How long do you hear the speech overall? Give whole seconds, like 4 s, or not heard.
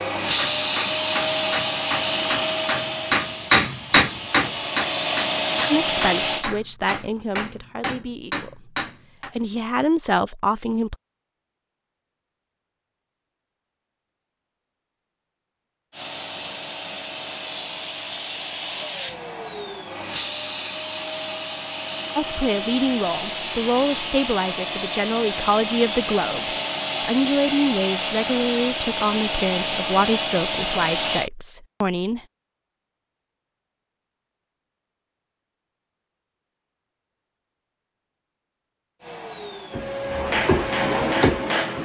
15 s.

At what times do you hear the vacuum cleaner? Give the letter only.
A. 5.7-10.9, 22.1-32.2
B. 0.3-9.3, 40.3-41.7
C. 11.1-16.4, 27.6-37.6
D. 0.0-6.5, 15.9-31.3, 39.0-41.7
D.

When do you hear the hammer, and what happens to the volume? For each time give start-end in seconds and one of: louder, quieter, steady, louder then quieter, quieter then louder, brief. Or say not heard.
0.3-9.3 louder then quieter
40.3-41.7 brief.